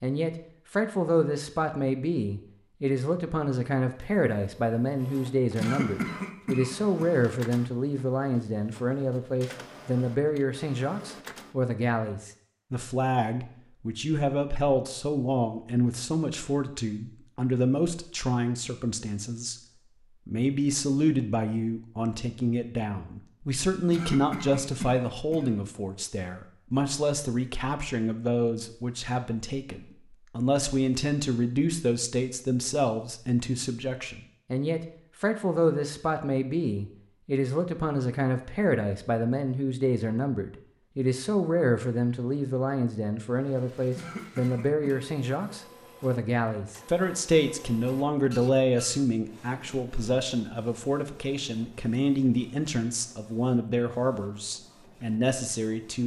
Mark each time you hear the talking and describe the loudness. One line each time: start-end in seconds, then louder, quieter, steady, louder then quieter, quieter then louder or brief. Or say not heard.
0.0-19.6 steady
20.2-56.0 steady.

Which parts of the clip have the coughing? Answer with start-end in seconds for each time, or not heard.
5.5-7.1, 23.9-25.5, 44.0-45.0.